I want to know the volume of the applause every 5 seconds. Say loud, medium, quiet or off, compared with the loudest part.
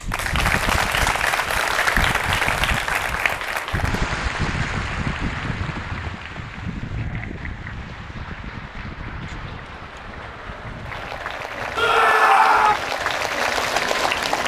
loud, quiet, loud.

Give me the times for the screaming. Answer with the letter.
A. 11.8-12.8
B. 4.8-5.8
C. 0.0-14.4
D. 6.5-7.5
A.